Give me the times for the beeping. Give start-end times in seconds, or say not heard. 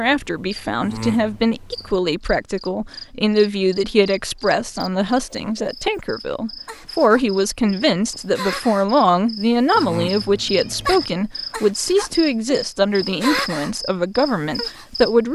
not heard.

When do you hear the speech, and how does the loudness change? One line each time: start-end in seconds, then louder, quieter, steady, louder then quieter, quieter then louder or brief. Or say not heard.
0.0-15.2 steady.